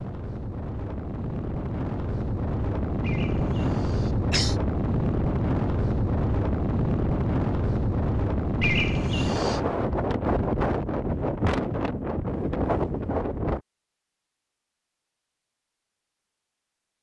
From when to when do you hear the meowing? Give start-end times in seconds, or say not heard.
not heard.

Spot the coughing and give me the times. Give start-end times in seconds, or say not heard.
3.0-4.5, 8.6-9.6.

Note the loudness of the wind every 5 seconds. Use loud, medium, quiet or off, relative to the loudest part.
loud, loud, loud, off.